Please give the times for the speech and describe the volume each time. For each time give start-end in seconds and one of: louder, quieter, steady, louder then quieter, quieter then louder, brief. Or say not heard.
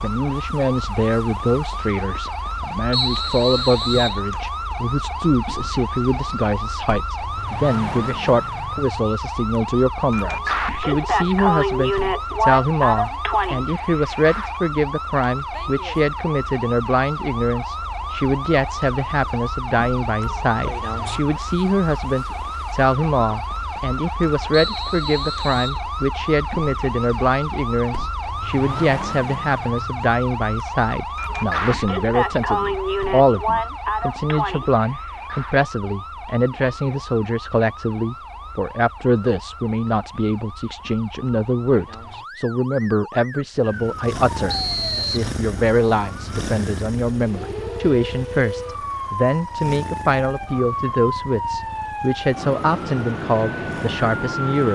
0.0-54.6 steady.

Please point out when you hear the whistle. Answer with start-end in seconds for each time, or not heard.
2.9-4.2, 24.5-25.8, 44.5-45.3.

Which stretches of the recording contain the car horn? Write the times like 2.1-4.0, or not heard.
not heard.